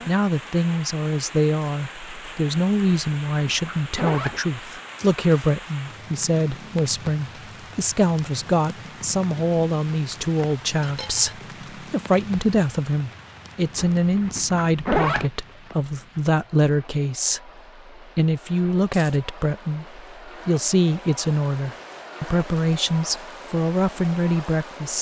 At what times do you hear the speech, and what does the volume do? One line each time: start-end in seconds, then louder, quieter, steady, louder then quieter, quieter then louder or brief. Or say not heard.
0.1-24.9 steady.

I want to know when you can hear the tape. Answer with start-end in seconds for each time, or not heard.
not heard.